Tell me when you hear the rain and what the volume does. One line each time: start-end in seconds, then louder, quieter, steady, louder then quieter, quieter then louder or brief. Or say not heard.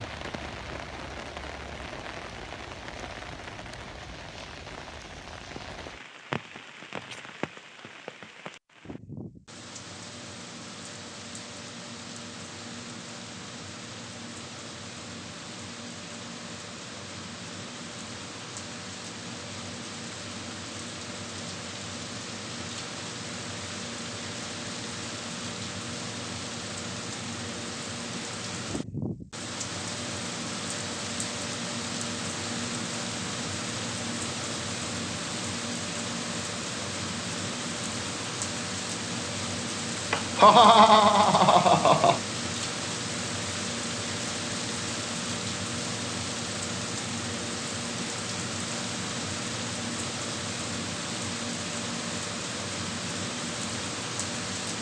0.0-54.7 louder.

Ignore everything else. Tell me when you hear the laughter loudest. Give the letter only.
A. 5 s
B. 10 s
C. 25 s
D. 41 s
D.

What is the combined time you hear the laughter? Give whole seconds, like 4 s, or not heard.
2 s.